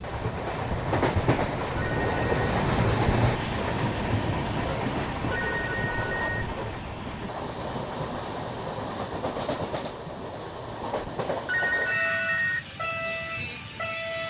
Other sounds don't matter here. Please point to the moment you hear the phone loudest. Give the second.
12 s.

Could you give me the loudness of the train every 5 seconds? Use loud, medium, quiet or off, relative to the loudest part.
loud, medium, medium.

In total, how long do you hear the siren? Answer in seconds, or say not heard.
not heard.